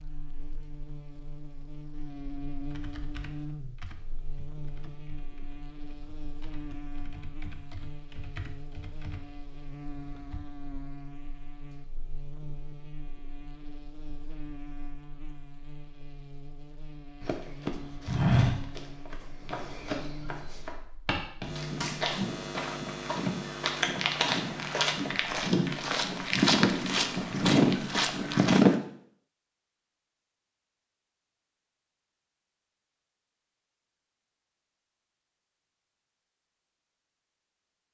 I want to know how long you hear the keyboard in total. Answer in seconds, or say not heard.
8 s.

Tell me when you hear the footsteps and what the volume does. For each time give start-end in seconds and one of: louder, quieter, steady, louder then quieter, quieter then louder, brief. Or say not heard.
17.2-28.8 quieter then louder.